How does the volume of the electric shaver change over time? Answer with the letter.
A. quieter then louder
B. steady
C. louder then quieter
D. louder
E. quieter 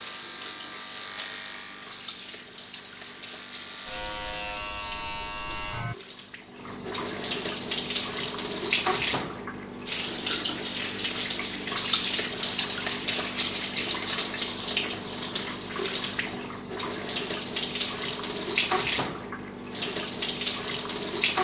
A.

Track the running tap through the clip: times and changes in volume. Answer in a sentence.
The running tap can be heard from 0.0 to 21.3 s, getting louder.